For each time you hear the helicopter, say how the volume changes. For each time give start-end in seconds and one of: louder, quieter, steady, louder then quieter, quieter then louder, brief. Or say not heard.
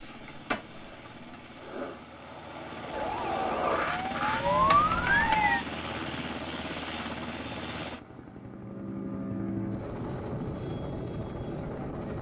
0.0-12.1 louder.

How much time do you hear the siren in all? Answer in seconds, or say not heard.
3 s.